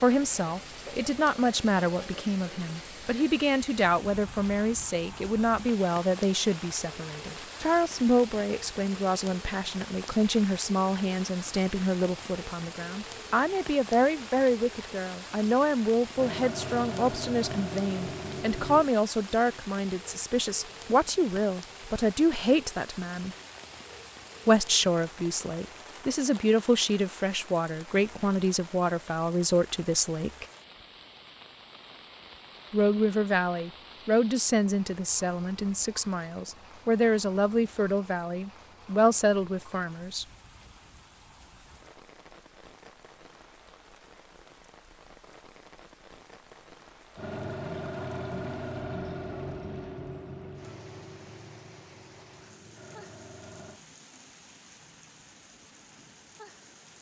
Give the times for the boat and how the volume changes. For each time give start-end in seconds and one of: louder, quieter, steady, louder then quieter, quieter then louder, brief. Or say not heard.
16.1-18.9 brief
47.1-53.8 quieter.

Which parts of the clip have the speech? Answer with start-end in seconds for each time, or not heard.
0.0-23.4, 24.4-30.4, 32.7-40.2.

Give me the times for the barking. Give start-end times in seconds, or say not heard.
not heard.